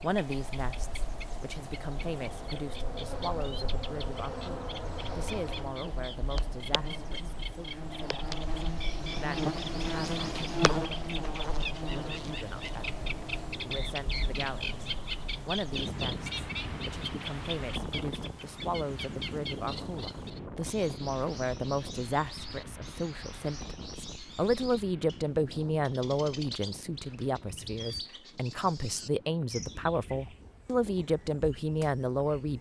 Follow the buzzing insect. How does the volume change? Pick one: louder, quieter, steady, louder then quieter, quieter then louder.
louder.